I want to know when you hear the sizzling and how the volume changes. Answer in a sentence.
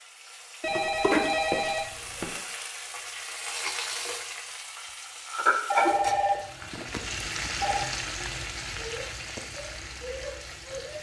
The sizzling can be heard from 0.0 to 10.9 s, getting louder then quieter.